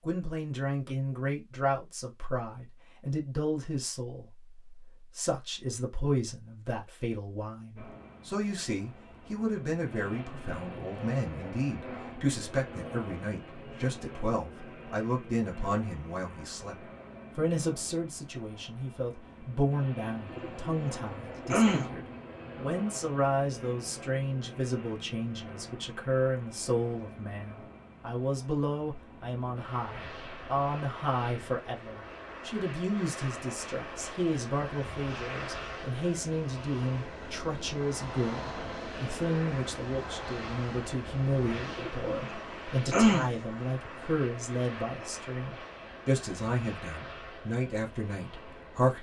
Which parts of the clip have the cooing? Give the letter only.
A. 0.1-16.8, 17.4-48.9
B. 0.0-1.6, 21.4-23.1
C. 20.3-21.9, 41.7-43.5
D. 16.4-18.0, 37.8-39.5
C.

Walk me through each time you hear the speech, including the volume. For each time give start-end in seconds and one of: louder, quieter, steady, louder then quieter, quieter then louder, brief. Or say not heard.
0.1-16.8 steady
17.4-48.9 steady.